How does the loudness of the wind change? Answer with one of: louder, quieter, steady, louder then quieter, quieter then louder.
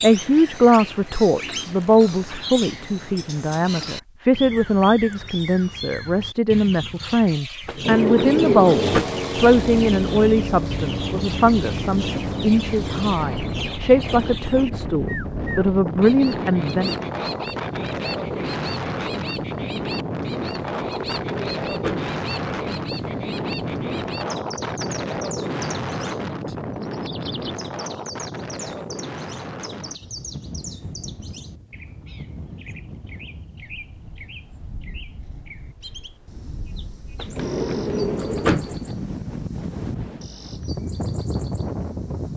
quieter then louder.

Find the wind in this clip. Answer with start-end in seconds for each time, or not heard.
9.5-42.3.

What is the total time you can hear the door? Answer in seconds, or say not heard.
4 s.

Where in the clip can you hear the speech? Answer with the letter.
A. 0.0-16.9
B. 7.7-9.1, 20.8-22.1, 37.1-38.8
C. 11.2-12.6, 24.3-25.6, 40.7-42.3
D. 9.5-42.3
A.